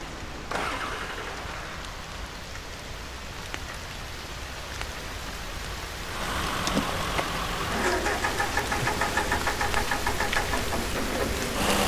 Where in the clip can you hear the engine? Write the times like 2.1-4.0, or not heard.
0.0-2.4, 6.0-11.8.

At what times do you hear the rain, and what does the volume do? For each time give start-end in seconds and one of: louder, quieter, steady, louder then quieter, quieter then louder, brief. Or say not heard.
0.0-11.8 louder.